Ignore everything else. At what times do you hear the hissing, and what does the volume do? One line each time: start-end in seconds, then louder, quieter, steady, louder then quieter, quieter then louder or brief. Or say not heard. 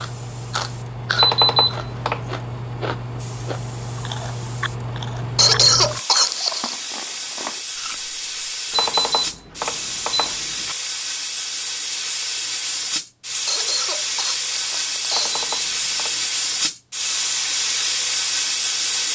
0.0-19.1 louder.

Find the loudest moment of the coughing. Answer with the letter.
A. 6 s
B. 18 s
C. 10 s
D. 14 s
A.